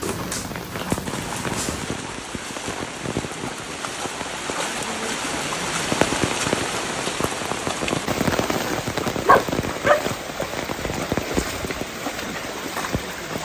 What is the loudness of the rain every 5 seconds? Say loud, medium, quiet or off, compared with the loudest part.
medium, loud, loud.